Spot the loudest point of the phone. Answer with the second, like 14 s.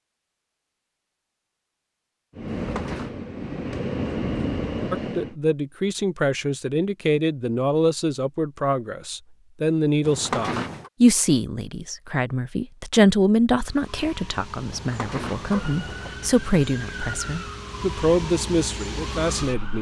10 s.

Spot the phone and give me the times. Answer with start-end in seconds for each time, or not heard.
2.5-3.1, 10.0-10.9, 14.7-16.2.